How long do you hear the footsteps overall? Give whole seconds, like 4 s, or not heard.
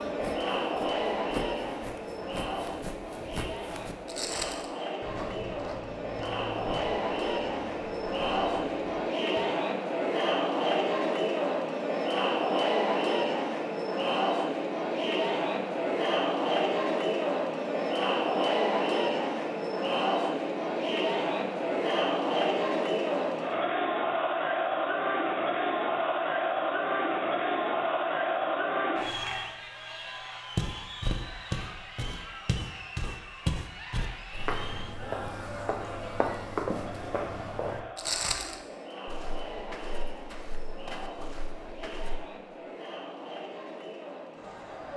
21 s.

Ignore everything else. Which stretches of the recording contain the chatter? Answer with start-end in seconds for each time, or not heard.
0.0-44.9.